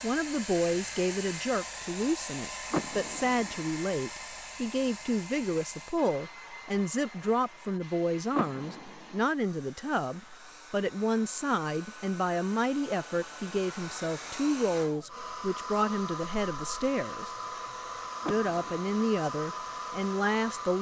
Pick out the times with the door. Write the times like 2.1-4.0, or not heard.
2.7-3.6, 8.3-9.2, 18.2-19.1.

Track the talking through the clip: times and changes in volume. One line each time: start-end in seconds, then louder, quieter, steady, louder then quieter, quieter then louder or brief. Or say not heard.
0.0-17.3 steady
18.2-20.7 brief.